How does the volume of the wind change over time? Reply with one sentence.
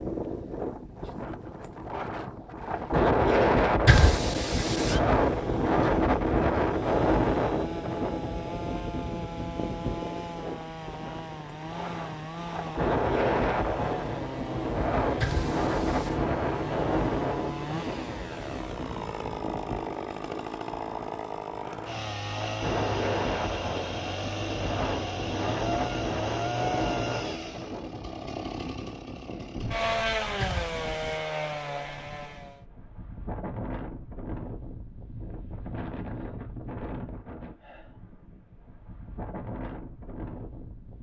The volume of the wind goes down.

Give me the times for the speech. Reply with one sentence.
You can't hear the speech here.